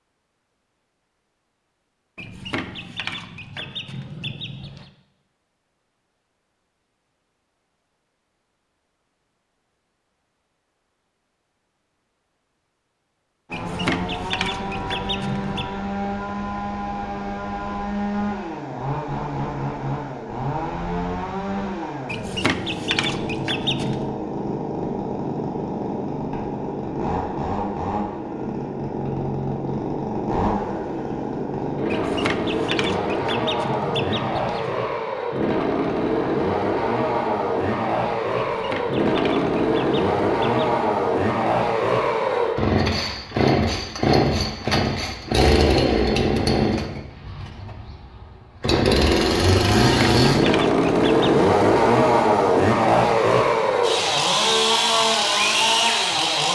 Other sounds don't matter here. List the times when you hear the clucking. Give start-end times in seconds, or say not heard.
2.1-4.9, 13.5-15.7, 22.1-24.1, 31.9-34.8, 38.4-40.8, 49.9-51.4.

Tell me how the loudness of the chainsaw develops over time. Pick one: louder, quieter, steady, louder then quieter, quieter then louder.
louder.